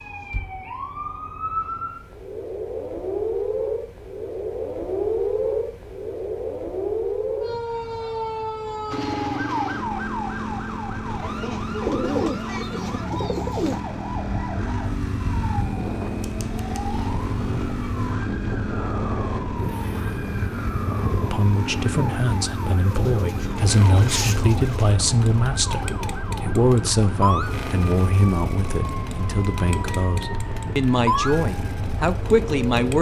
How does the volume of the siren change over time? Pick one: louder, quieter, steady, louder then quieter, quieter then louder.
quieter.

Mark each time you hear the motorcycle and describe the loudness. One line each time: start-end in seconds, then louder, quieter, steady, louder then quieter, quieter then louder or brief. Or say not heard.
8.9-32.9 steady.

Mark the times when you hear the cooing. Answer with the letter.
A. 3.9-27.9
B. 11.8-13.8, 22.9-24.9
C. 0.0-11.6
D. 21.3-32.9
B.